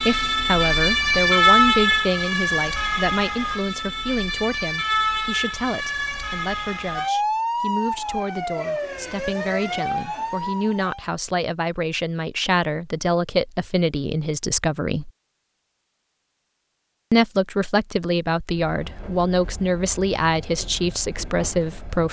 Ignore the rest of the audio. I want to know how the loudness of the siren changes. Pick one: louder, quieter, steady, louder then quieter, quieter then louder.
quieter.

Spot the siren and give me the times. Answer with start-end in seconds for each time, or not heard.
0.0-11.0.